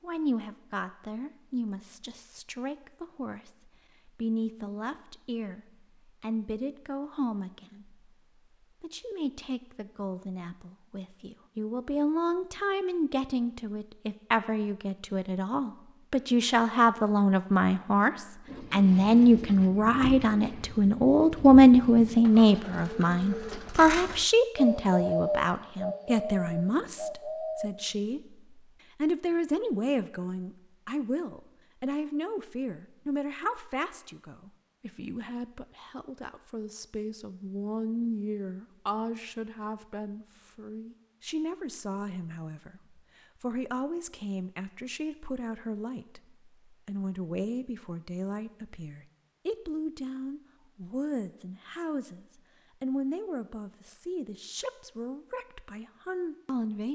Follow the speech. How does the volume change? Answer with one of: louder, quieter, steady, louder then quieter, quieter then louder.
louder then quieter.